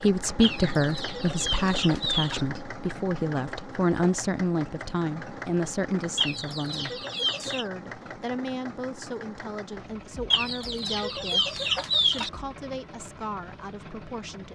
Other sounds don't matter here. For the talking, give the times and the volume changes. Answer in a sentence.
You can hear the talking from 0.0 to 14.5 s, getting quieter.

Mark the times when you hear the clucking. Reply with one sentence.
You can hear the clucking from 0.4 to 2.5 s, from 6.2 to 7.7 s and from 10.3 to 12.3 s.